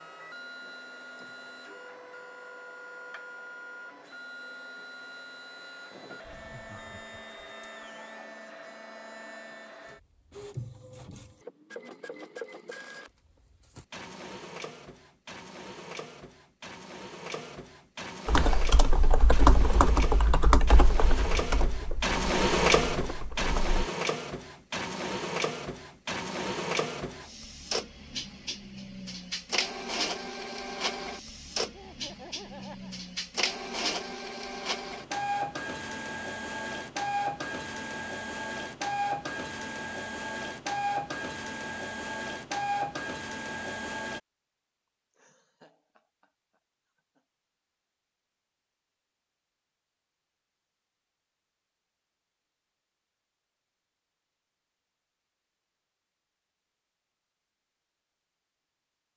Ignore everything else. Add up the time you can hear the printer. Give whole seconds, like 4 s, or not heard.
44 s.